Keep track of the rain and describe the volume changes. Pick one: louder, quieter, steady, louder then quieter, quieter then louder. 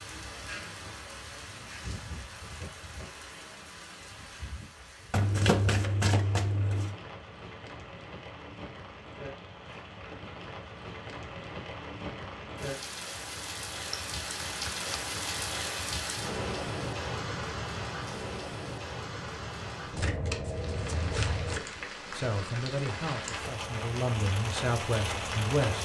louder.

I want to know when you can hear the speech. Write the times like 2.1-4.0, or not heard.
22.1-25.8.